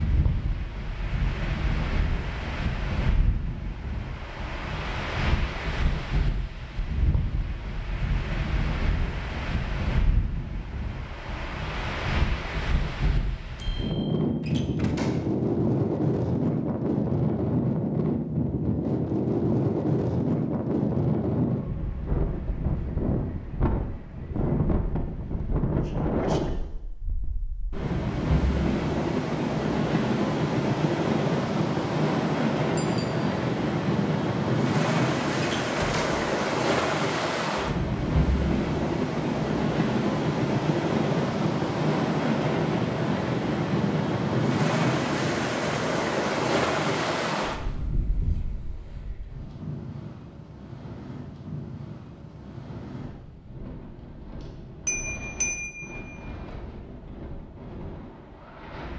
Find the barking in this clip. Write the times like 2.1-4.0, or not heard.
not heard.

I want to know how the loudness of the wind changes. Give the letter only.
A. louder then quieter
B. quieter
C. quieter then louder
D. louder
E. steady
A.